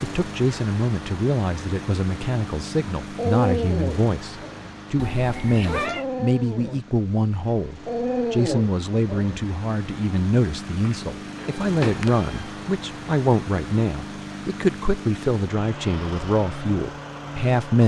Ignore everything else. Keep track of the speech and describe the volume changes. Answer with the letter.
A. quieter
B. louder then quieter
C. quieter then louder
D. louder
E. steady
E.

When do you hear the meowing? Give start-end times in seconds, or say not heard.
5.0-6.0, 10.8-12.3.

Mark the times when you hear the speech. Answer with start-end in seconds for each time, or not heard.
0.0-17.8.